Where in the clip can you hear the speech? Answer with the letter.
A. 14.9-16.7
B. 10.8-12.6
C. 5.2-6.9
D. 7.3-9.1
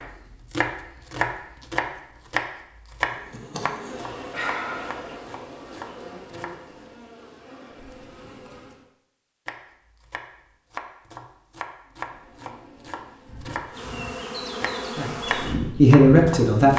A.